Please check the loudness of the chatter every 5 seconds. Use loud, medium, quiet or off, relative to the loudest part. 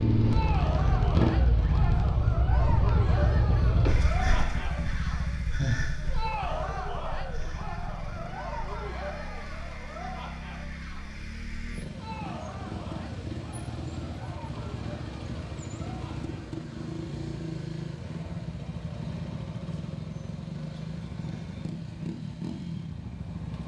loud, loud, medium, quiet, off.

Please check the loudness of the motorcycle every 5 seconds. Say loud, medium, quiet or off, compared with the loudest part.
loud, medium, medium, medium, medium.